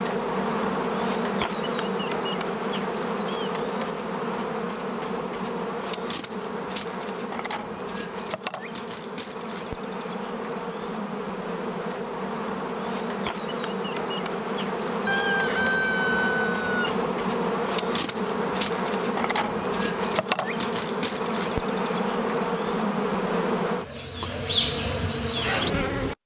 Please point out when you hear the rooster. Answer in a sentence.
You can hear the rooster from 15.1 to 17.0 s.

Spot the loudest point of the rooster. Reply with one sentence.
The volume of the rooster peaks at 16 seconds.